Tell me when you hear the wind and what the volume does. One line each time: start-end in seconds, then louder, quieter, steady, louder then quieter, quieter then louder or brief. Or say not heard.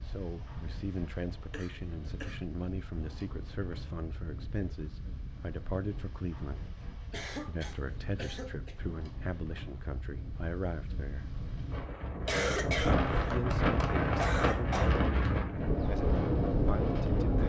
0.0-17.4 louder.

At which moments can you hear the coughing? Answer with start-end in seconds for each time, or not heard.
1.5-2.4, 7.1-8.8, 12.2-14.9.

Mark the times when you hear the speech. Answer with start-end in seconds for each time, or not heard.
0.0-11.3, 13.2-17.4.